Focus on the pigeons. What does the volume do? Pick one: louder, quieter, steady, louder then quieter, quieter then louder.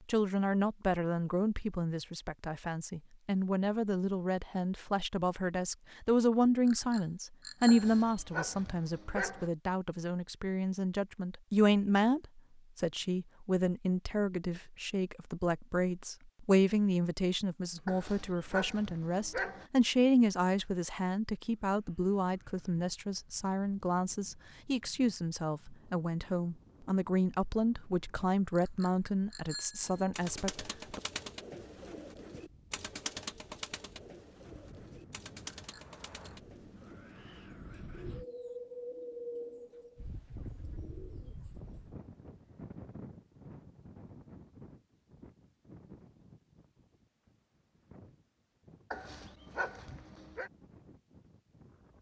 quieter.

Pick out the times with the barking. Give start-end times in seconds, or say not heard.
7.7-9.5, 17.9-19.6, 48.9-50.5.